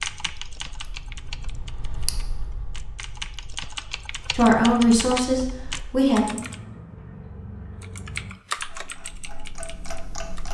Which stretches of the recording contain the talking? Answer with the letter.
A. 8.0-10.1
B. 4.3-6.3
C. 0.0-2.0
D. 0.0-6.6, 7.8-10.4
B.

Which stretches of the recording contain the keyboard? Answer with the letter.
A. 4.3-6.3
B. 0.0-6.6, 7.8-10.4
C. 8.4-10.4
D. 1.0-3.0
B.